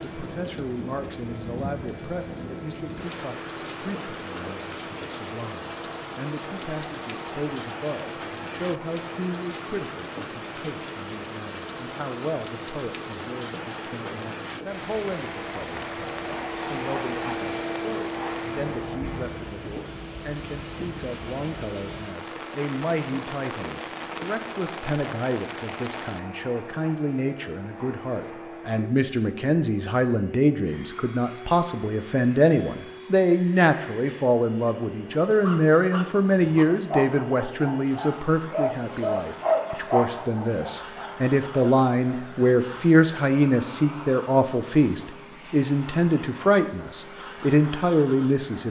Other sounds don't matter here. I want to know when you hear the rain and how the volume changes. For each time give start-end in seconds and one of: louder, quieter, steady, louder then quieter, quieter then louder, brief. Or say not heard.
0.0-26.2 steady.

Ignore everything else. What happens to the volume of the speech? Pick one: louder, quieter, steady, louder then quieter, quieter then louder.
louder.